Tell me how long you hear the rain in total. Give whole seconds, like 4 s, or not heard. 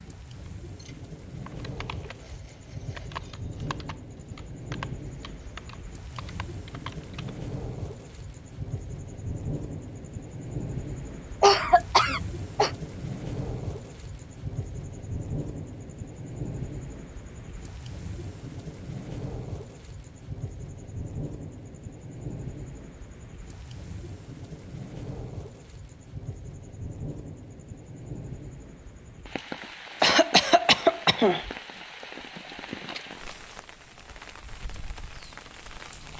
36 s.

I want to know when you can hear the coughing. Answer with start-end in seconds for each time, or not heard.
11.4-12.7, 30.0-31.4.